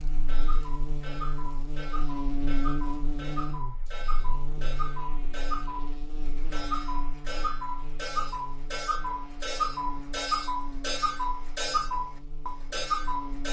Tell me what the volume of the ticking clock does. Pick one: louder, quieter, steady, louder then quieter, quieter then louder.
louder.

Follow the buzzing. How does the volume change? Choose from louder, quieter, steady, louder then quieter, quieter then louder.
quieter.